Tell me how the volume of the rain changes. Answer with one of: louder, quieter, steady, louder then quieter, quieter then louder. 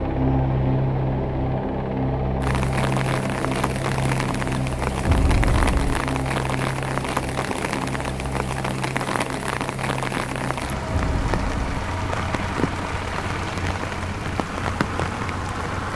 steady.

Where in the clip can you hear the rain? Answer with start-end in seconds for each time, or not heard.
2.4-15.9.